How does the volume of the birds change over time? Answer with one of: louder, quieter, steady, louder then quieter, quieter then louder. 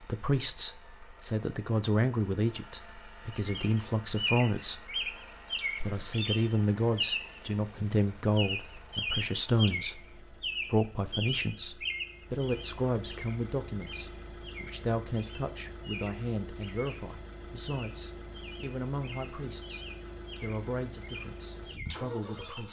quieter.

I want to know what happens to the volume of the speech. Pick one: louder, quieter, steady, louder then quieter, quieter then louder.
quieter.